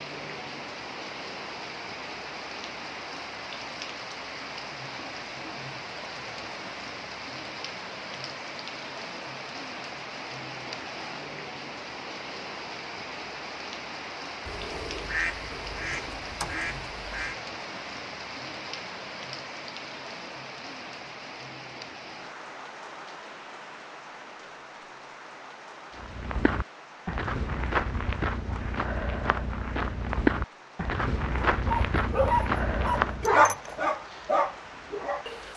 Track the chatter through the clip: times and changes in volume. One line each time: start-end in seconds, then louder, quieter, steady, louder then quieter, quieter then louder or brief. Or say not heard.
not heard.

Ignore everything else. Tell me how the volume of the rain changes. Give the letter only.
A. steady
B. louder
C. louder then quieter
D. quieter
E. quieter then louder
D.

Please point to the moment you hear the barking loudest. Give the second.
33 s.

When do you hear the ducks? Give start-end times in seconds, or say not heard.
14.4-17.4.